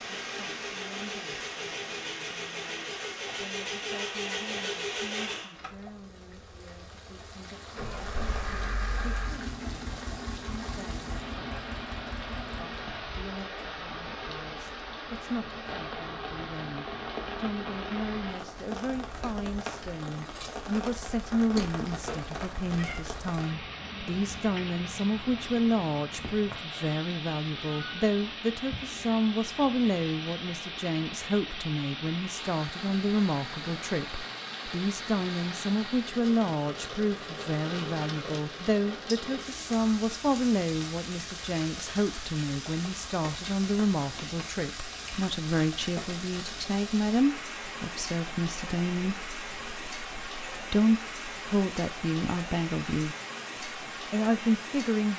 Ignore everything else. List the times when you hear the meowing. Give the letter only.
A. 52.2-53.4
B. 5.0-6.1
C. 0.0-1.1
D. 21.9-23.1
D.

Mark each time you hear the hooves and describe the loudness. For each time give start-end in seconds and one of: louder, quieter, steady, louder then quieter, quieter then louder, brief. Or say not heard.
not heard.